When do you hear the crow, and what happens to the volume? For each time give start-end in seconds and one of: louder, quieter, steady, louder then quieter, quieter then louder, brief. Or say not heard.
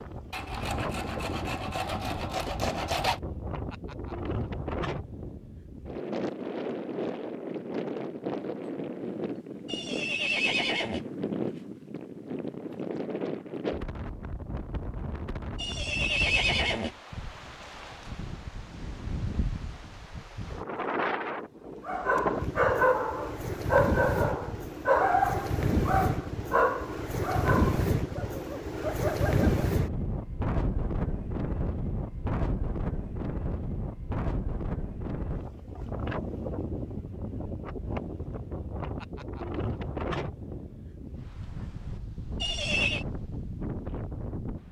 not heard.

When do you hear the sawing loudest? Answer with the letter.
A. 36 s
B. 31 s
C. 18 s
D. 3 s
D.